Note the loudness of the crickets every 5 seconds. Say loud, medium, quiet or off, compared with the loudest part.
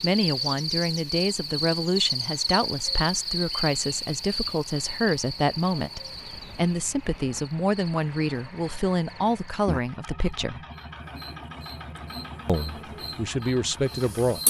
loud, medium, medium.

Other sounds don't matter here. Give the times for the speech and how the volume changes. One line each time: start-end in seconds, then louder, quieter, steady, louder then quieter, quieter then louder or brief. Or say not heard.
0.0-10.6 steady
12.4-14.4 brief.